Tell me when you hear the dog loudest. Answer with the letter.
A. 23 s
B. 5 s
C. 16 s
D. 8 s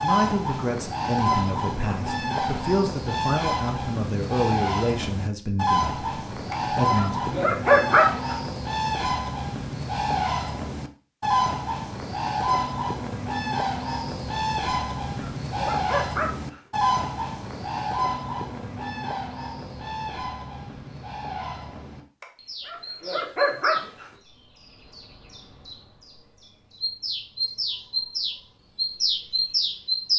D.